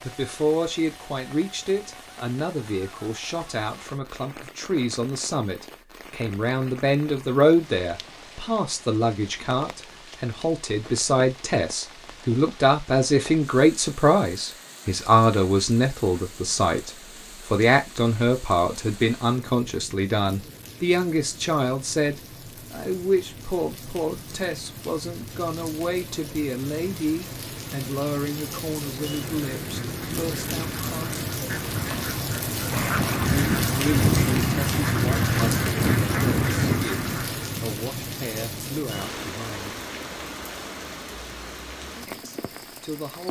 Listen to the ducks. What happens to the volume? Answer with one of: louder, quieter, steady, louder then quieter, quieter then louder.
louder.